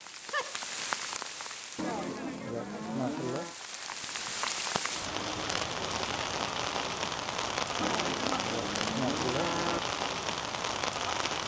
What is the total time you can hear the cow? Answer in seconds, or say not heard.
4 s.